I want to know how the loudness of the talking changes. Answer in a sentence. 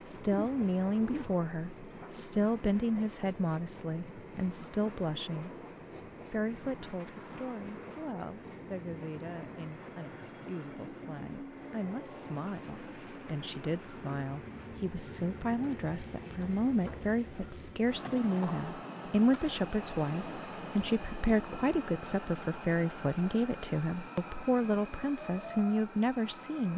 The loudness of the talking goes down, then up.